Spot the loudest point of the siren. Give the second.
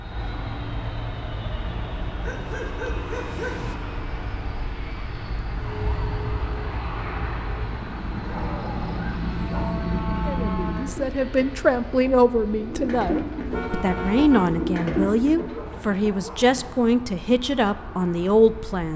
10 s.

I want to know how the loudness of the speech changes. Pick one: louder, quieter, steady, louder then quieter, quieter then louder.
steady.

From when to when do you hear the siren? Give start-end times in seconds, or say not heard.
5.5-11.0.